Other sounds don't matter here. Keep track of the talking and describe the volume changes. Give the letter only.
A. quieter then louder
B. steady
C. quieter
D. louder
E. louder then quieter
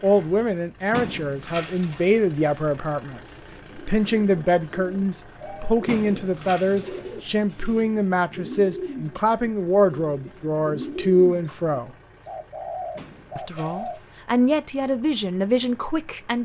B.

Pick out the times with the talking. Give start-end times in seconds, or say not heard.
0.0-11.9, 13.3-16.4.